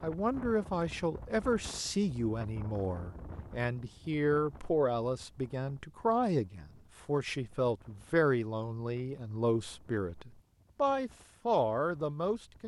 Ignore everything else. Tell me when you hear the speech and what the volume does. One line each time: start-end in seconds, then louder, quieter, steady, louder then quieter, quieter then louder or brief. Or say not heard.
0.0-12.6 steady.